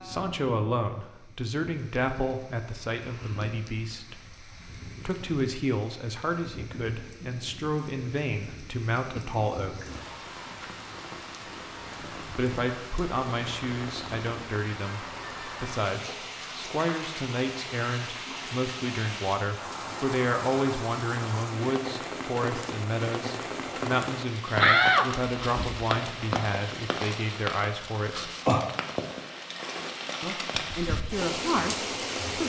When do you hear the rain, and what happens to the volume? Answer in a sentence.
The rain can be heard from 0.0 to 32.4 s, getting louder.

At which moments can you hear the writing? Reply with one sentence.
You can't hear the writing here.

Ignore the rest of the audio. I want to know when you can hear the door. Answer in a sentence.
You can hear the door from 24.6 to 25.9 s.